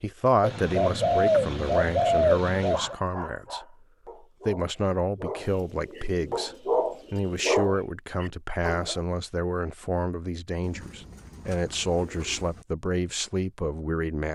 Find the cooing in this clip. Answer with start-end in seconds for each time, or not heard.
0.4-3.0, 5.4-7.7, 10.6-12.7.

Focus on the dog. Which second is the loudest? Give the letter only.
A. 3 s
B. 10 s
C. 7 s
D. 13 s
C.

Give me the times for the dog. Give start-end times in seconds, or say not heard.
2.7-9.0.